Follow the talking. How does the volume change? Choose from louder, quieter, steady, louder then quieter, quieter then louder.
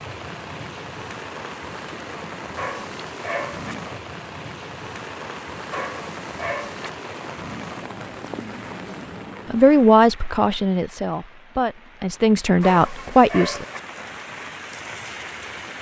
quieter then louder.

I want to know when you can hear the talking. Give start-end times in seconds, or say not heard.
9.5-13.7.